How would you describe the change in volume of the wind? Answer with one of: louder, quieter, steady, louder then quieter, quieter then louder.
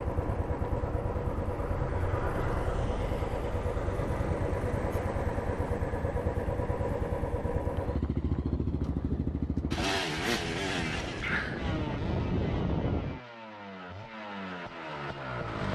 louder.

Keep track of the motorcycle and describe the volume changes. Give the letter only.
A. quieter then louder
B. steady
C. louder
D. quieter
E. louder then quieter
D.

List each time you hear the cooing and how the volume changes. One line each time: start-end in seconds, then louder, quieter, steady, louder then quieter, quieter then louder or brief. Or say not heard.
not heard.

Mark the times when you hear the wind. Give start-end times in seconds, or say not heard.
0.0-13.2.